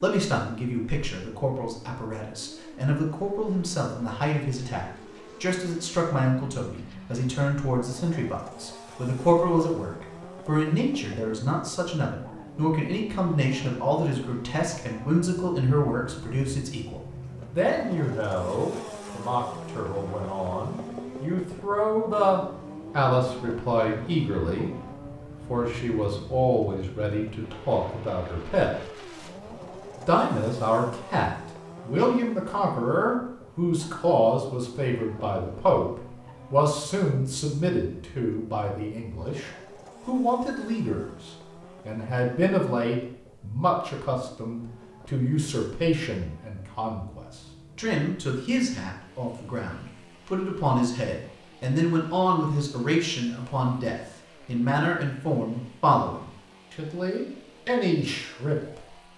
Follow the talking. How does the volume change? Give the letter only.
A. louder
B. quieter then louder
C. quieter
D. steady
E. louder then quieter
D.